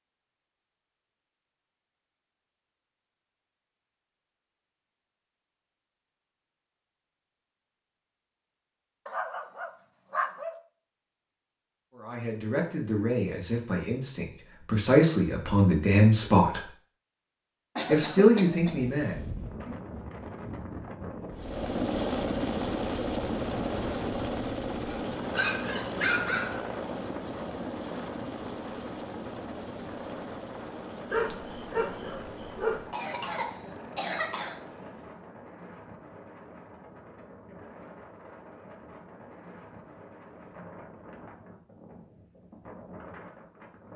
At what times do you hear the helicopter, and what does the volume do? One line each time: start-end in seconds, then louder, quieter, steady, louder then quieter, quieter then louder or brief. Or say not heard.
21.3-35.3 quieter.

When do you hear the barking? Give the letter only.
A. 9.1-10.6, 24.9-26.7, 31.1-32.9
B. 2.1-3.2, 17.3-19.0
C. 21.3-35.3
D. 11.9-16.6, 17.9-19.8
A.